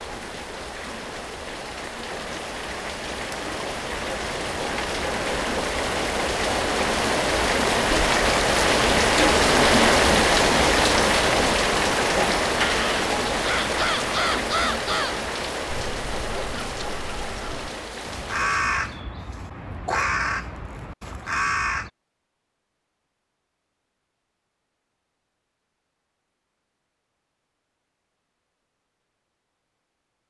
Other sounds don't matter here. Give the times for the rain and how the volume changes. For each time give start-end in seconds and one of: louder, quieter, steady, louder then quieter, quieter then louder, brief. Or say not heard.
0.0-19.0 louder then quieter.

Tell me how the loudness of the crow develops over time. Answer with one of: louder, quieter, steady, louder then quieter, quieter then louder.
quieter then louder.